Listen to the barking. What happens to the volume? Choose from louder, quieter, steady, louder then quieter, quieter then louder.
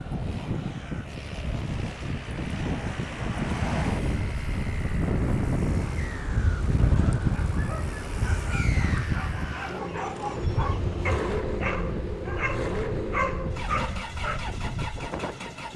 louder.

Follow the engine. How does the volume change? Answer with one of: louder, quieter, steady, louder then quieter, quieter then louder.
louder.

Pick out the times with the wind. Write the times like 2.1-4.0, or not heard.
0.0-15.7.